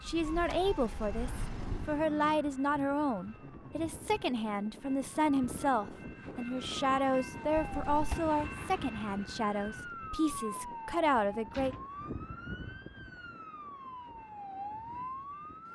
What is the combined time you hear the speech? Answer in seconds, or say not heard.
12 s.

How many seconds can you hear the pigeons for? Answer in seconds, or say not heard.
not heard.